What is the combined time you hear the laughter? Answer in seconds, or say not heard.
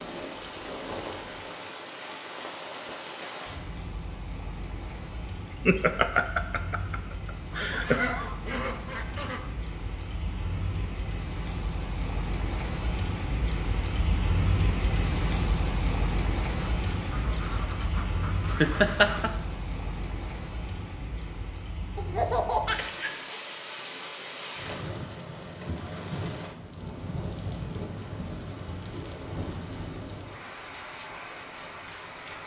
5 s.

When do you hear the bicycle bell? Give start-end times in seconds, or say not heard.
not heard.